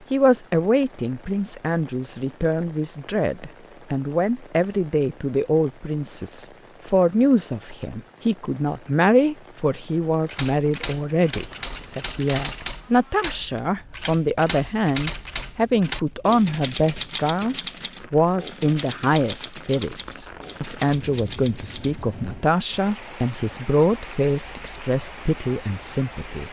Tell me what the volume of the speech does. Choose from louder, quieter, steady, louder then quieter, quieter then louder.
steady.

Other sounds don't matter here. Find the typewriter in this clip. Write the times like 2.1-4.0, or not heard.
10.2-22.1.